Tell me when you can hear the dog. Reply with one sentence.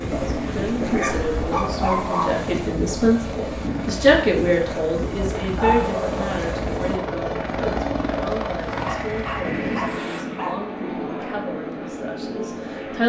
You can hear the dog from 0.1 to 2.4 s, from 5.4 to 6.2 s and from 8.8 to 10.6 s.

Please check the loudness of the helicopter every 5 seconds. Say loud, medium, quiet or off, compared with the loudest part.
medium, loud, loud.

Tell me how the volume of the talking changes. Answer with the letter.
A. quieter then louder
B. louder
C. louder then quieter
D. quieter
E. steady
C.